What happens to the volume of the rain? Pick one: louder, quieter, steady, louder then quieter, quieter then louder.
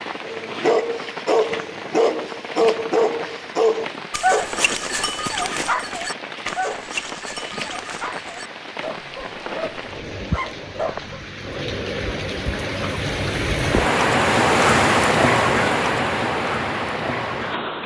louder.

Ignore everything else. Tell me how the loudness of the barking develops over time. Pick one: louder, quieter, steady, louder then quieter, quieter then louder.
quieter.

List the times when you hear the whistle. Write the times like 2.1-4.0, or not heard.
not heard.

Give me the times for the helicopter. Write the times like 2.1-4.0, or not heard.
not heard.